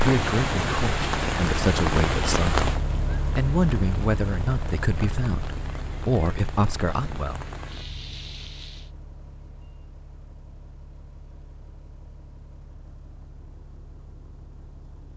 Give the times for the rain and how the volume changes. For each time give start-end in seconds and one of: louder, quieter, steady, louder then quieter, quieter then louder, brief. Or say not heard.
0.0-8.9 quieter.